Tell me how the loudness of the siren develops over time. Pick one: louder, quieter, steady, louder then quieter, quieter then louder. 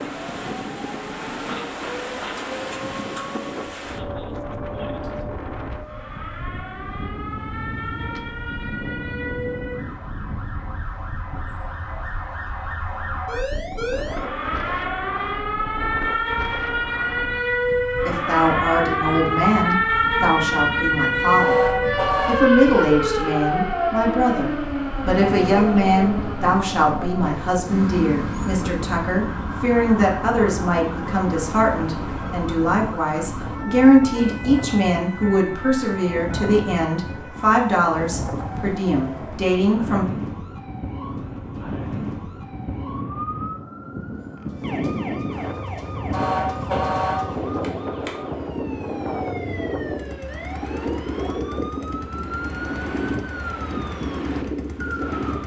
louder then quieter.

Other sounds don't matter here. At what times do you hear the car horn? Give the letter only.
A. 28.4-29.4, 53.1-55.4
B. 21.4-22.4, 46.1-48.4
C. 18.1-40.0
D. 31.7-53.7
B.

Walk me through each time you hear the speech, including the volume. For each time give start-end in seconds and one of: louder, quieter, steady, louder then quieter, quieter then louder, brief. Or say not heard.
18.1-40.0 steady.